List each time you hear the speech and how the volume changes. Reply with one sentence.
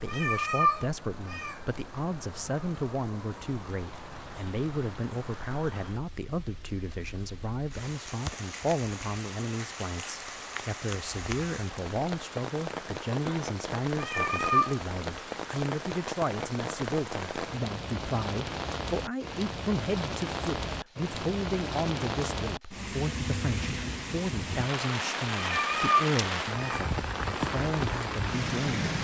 You can hear the speech from 0.0 to 28.9 s, at a steady volume.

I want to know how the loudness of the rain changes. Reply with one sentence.
The loudness of the rain goes up.